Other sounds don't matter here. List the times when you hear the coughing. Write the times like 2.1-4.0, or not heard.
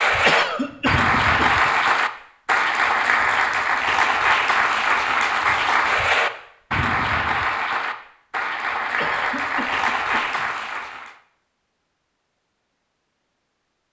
0.2-1.6, 8.9-10.4.